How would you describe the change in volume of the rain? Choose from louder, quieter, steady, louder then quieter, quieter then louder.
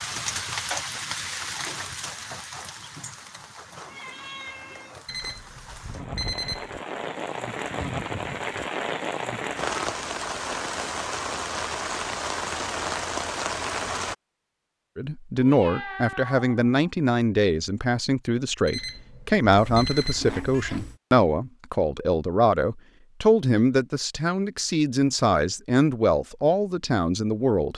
quieter then louder.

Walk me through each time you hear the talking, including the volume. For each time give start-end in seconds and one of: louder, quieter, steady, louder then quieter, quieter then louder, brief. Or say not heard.
14.9-27.7 steady.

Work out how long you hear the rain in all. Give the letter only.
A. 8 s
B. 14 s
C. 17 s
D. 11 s
B.